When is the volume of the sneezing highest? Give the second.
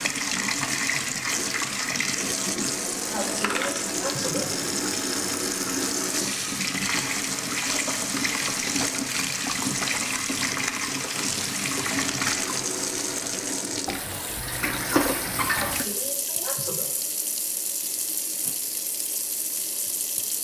4 s.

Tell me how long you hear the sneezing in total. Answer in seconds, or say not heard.
3 s.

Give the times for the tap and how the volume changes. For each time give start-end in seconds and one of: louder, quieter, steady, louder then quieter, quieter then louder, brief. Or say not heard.
0.0-20.3 quieter.